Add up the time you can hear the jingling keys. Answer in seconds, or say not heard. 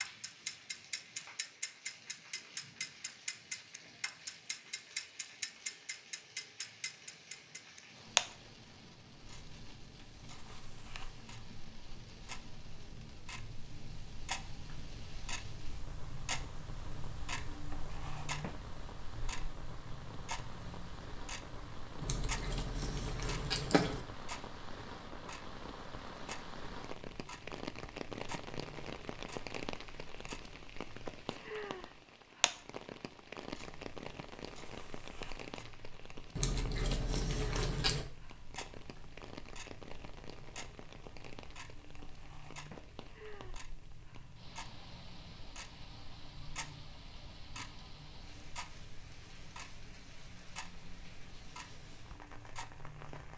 4 s.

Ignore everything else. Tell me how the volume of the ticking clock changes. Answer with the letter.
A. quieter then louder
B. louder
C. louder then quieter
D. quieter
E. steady
D.